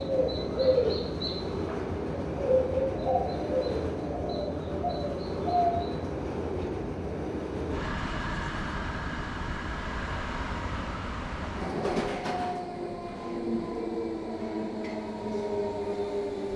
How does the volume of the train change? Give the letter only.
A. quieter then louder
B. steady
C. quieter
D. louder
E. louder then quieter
B.